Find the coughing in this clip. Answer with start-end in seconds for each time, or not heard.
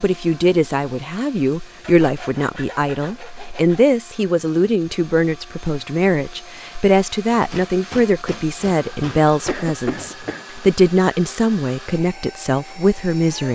9.4-10.4.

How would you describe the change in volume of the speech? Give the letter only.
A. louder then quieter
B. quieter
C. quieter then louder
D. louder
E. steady
E.